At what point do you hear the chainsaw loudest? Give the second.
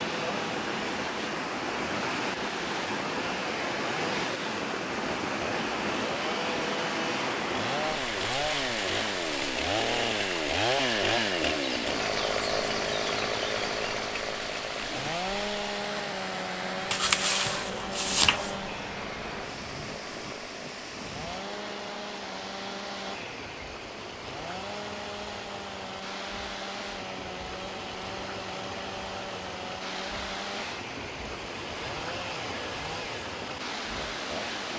11 s.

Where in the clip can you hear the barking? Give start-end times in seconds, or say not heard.
16.9-18.6.